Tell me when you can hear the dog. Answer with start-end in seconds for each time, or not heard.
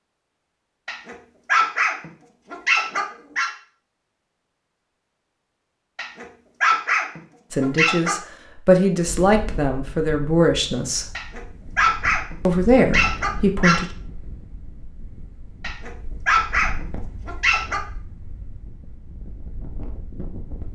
0.8-3.5, 6.0-8.2, 11.2-13.8, 15.6-17.8.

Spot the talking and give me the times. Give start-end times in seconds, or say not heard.
7.5-11.1, 12.4-13.9.